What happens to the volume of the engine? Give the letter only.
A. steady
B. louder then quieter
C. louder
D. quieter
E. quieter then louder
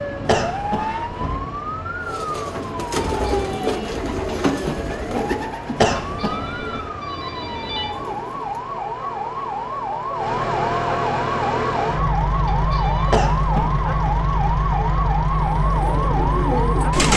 C.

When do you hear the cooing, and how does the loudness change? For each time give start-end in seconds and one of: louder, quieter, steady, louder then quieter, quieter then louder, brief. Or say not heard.
2.0-8.6 quieter
15.3-17.1 brief.